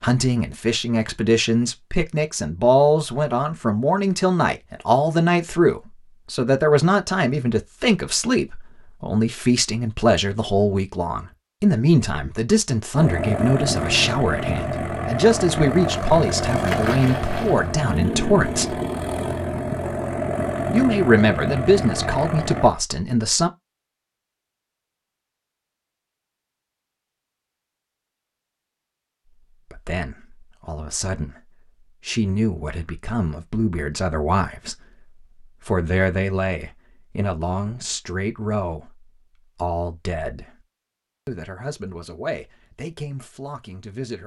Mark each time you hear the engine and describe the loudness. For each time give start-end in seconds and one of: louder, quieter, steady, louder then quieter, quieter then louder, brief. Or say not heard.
12.9-22.7 steady.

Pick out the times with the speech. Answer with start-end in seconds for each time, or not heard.
0.0-18.8, 20.7-23.5, 29.5-40.6, 41.2-44.2.